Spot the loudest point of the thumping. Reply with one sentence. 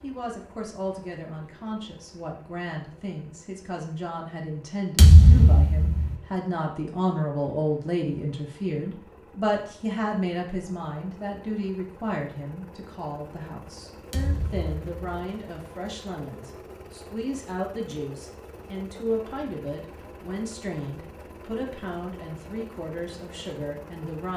The volume of the thumping peaks at 5 seconds.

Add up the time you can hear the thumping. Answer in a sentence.
You can hear the thumping for 2 seconds altogether.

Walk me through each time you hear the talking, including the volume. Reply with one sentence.
The talking can be heard from 0.0 to 24.3 s, getting louder then quieter.